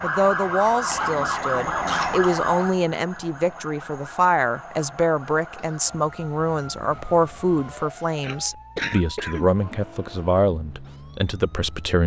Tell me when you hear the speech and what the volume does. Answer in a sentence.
You can hear the speech from 0.0 to 12.0 s, at a steady volume.